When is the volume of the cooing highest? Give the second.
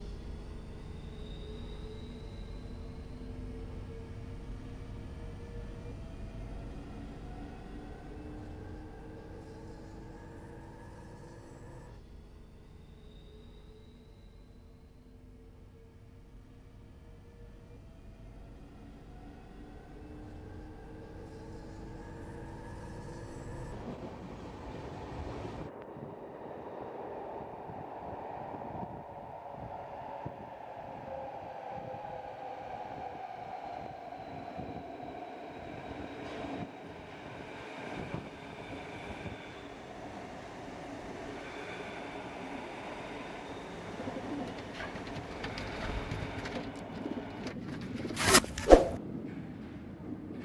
49 s.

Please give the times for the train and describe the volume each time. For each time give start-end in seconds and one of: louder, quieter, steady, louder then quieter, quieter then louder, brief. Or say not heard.
0.0-50.3 quieter then louder.